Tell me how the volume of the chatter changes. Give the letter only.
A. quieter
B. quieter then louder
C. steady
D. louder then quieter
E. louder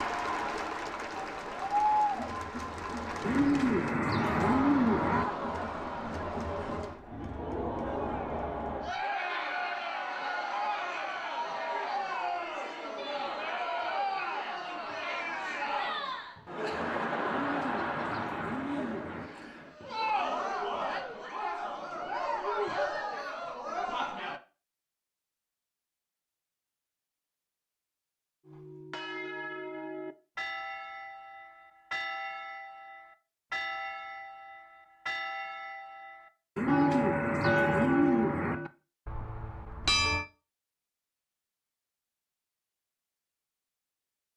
C.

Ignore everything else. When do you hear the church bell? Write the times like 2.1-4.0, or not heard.
28.4-40.2.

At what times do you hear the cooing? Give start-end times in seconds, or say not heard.
3.2-5.2, 17.2-19.3, 36.5-38.5.